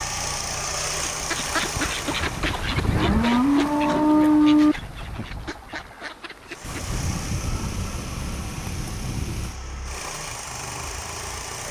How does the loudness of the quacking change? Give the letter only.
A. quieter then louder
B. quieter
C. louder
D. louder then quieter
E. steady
B.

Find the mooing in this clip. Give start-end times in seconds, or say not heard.
2.9-4.8.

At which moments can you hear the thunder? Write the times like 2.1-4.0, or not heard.
6.6-9.6.